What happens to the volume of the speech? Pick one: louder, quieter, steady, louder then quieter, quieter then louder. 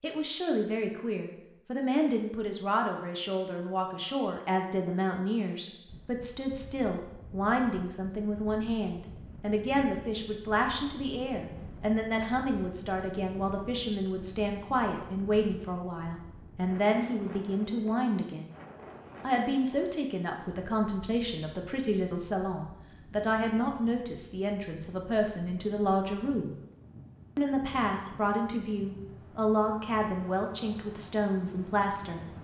steady.